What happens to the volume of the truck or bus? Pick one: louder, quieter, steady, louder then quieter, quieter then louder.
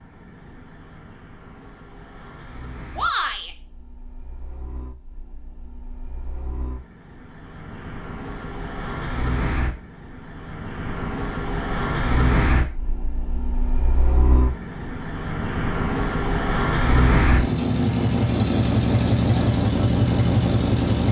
louder.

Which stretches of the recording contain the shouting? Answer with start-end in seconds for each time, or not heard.
3.0-3.5.